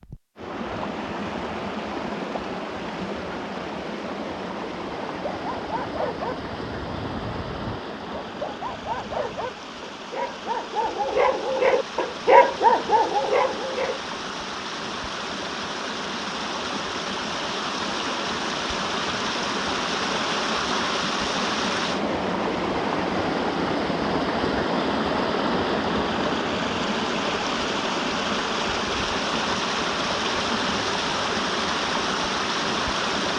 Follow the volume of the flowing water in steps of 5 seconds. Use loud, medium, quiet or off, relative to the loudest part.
medium, medium, medium, loud, loud, loud, loud.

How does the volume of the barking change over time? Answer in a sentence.
The volume of the barking goes up.